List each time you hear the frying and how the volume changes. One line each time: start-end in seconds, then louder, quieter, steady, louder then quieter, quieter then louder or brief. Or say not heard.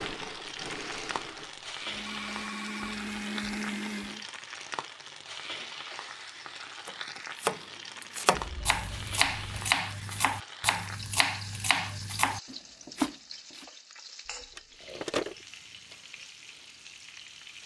0.0-17.6 quieter.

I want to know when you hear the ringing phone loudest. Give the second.
15 s.